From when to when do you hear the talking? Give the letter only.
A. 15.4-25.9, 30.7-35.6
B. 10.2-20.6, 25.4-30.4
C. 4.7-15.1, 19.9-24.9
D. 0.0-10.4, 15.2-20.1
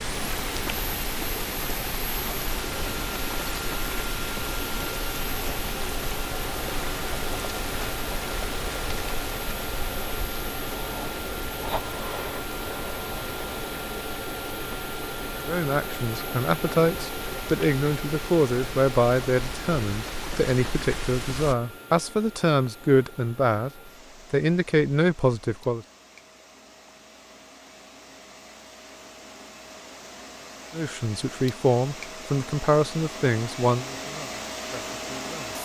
A.